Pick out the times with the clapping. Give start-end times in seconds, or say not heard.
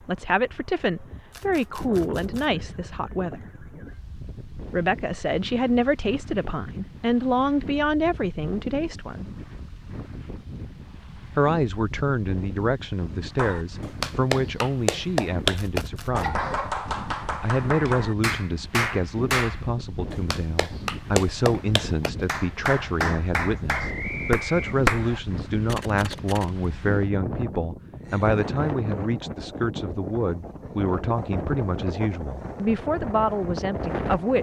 13.3-25.1.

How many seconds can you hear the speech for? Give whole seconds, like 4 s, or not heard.
30 s.